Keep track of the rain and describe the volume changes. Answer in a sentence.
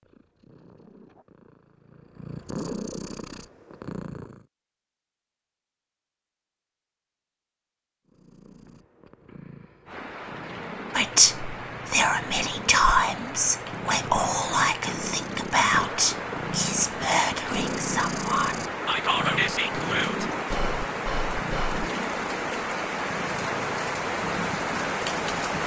The volume of the rain goes up.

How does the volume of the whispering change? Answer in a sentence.
The loudness of the whispering goes down.